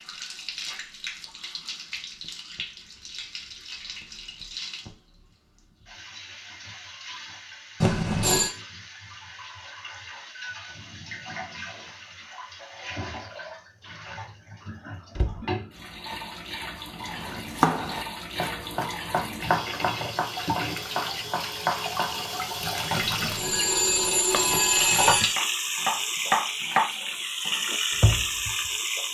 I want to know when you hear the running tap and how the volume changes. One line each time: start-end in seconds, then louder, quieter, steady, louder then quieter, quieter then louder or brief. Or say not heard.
0.0-29.0 louder.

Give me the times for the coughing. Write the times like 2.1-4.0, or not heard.
not heard.